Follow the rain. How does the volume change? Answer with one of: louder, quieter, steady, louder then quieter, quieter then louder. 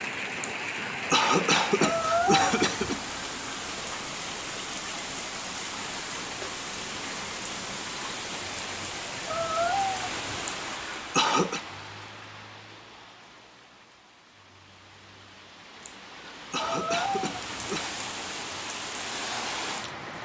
quieter then louder.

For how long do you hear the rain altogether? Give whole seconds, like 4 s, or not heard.
20 s.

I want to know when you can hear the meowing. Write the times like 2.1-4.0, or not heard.
1.8-3.0, 9.2-10.3, 16.6-17.6.